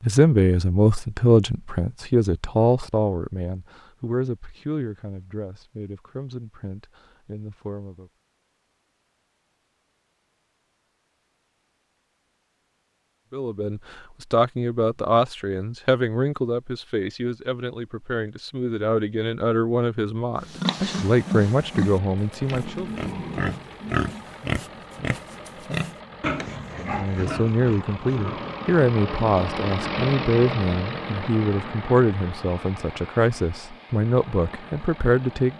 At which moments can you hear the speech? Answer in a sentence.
You can hear the speech from 0.0 to 8.1 s, from 13.3 to 22.9 s and from 26.8 to 35.5 s.